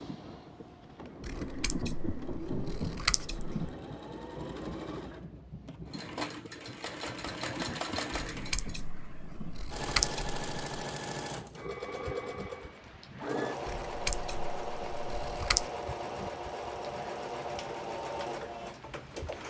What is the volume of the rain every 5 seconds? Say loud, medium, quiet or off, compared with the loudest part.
loud, medium, medium, medium.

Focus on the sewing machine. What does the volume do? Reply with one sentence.
The volume of the sewing machine goes up.